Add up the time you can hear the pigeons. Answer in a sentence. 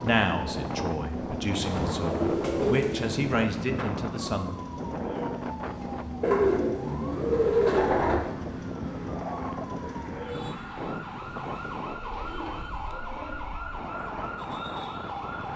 You can hear the pigeons for 5 seconds altogether.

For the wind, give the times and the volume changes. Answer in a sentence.
You can hear the wind from 0.0 to 15.5 s, getting quieter.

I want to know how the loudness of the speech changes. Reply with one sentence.
The loudness of the speech goes up.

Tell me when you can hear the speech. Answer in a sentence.
The speech can be heard from 0.0 to 4.5 s.